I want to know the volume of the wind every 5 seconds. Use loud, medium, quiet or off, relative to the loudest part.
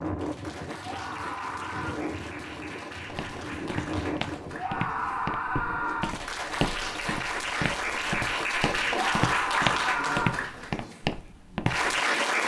loud, medium, off.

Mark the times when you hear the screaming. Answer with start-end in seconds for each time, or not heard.
0.8-2.0, 4.5-6.2, 8.9-10.3.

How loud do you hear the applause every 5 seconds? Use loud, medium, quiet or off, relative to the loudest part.
quiet, loud, loud.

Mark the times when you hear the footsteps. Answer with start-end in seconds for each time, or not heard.
3.0-11.9.